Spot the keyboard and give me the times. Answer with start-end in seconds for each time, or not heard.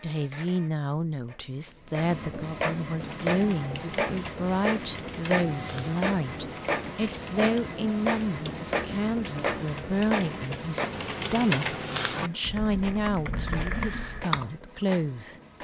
3.0-14.5.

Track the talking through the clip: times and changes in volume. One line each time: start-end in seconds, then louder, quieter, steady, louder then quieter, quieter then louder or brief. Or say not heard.
0.0-15.3 steady.